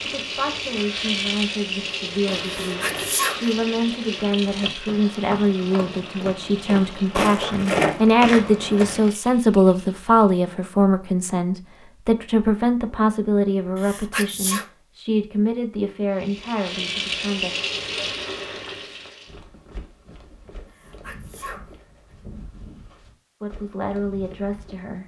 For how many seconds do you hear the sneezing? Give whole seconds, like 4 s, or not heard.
3 s.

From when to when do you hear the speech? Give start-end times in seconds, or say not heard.
0.0-17.6, 23.4-25.0.